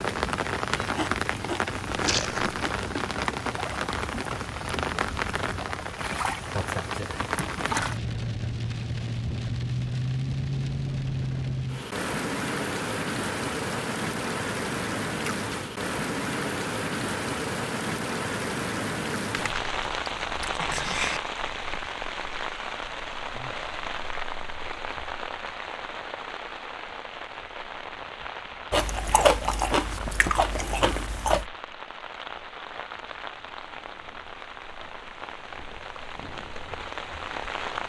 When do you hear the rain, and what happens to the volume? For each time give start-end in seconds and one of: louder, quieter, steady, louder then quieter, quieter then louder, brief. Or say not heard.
0.0-37.8 quieter.